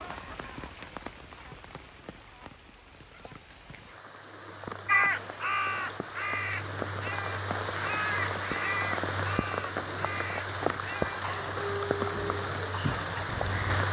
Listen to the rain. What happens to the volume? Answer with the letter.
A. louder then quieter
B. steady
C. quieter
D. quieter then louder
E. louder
E.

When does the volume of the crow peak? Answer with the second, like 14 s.
5 s.